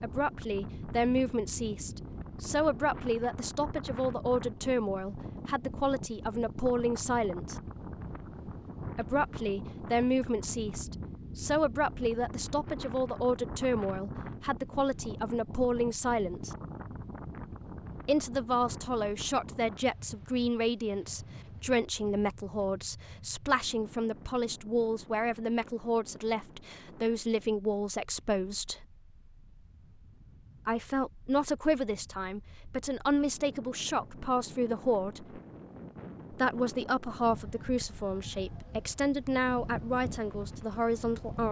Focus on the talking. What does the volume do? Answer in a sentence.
The loudness of the talking stays about the same.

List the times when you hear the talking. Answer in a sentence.
The talking can be heard from 0.0 to 7.5 s, from 8.9 to 16.6 s, from 18.1 to 28.8 s, from 30.6 to 35.4 s and from 36.3 to 41.4 s.